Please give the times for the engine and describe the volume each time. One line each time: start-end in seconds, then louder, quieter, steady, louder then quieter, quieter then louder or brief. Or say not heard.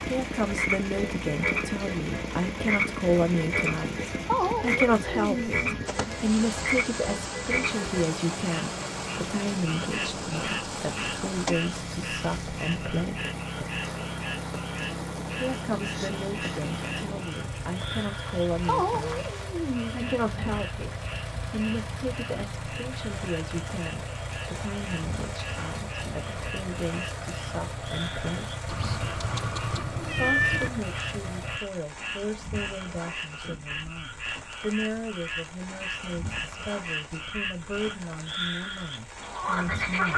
0.0-31.6 steady.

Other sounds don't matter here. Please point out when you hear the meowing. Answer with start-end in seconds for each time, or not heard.
4.2-6.2, 18.6-20.6, 28.6-30.7.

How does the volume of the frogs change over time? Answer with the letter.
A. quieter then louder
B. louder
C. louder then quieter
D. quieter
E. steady
A.